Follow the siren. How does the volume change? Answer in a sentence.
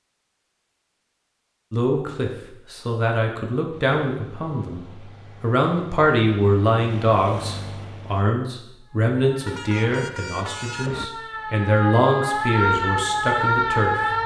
The volume of the siren goes up.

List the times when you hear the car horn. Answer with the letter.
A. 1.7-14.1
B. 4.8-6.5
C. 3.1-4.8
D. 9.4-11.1
D.